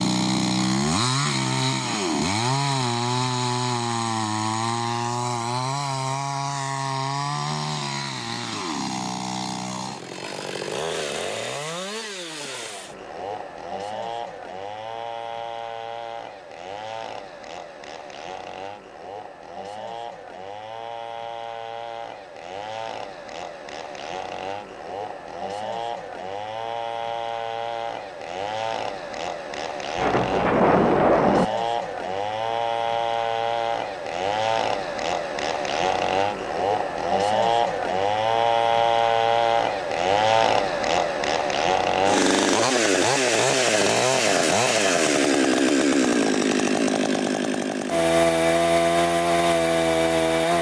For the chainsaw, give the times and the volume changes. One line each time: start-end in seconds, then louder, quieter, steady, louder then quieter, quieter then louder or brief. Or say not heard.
0.0-50.5 quieter then louder.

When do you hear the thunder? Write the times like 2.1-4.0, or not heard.
29.9-31.4.